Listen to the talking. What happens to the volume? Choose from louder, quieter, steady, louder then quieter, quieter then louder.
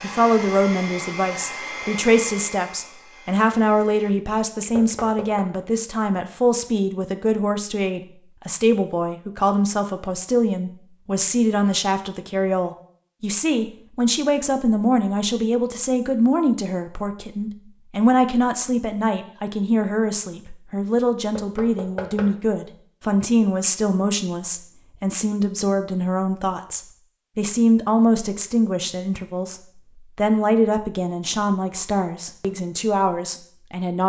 steady.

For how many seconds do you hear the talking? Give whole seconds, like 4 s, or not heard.
34 s.